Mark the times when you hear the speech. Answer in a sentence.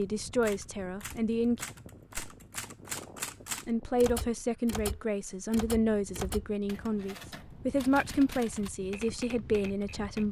You can hear the speech from 0.0 to 1.6 s and from 3.6 to 10.2 s.